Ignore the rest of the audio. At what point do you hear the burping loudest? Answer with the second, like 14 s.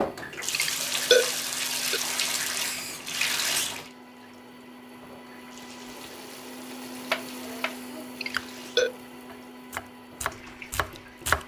1 s.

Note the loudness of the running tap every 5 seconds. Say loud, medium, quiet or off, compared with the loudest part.
loud, quiet, quiet.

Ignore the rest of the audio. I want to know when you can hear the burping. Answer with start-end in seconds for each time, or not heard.
0.5-2.0, 8.2-8.9.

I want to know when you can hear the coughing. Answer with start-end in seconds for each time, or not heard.
not heard.